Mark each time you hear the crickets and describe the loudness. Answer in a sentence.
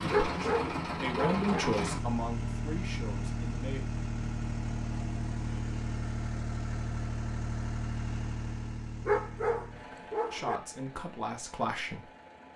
The crickets can't be heard in this clip.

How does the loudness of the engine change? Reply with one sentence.
The volume of the engine goes down.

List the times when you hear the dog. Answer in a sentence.
The dog can be heard from 0.1 to 1.6 s and from 9.1 to 10.6 s.